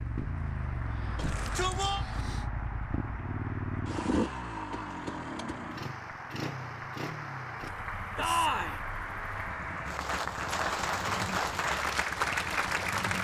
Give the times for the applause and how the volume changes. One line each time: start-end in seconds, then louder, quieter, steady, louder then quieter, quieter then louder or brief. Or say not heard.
0.0-13.1 louder.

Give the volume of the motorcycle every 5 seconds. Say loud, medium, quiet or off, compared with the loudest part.
loud, medium, medium.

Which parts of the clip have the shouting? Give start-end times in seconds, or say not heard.
1.1-2.0, 8.2-8.8.